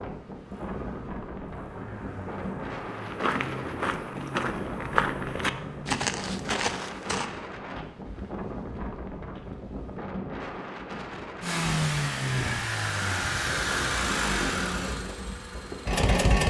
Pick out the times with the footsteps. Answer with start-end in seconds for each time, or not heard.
2.9-9.8.